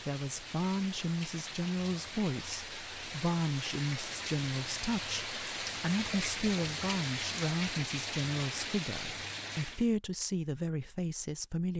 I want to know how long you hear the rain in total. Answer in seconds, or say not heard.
10 s.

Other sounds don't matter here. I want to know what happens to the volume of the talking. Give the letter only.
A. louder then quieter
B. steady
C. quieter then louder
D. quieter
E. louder
B.